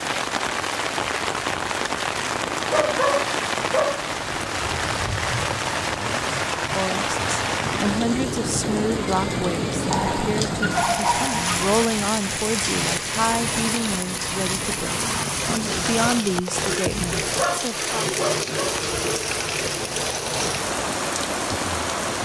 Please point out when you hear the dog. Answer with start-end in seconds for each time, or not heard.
2.7-4.1, 9.9-11.7, 17.4-18.8.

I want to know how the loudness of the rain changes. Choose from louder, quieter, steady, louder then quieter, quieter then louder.
steady.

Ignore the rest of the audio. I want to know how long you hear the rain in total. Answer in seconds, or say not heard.
22 s.